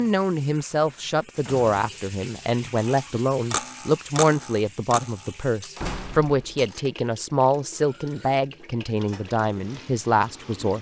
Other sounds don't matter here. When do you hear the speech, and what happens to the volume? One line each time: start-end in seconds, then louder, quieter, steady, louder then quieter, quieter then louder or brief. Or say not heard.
0.0-10.7 steady.